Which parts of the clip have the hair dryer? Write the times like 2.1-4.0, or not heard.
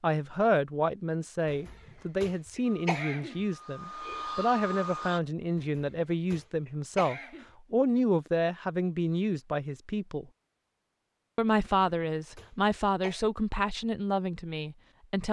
2.6-5.2.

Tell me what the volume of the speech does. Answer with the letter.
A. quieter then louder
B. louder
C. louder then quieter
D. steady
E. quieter
D.